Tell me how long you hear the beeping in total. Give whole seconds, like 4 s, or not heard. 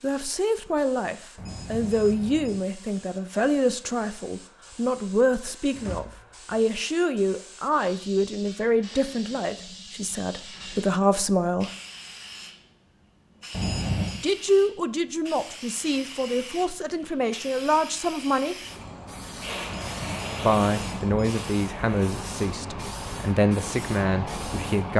4 s.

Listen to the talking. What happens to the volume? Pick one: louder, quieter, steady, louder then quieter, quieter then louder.
steady.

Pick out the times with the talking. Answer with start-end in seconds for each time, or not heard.
0.0-11.7, 14.1-18.6, 20.4-24.9.